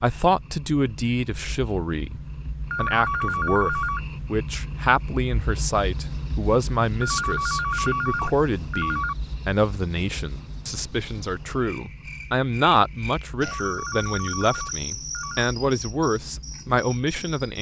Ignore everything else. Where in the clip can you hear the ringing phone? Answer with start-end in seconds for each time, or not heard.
2.7-4.0, 7.0-9.2, 13.4-15.5.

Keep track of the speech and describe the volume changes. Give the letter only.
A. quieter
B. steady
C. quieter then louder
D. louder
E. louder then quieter
B.